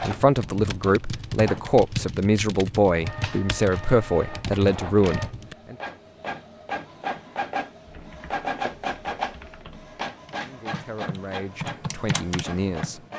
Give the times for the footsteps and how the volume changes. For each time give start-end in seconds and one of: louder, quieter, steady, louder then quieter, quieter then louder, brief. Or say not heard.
not heard.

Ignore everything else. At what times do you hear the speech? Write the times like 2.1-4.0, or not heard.
0.0-5.8, 10.4-13.1.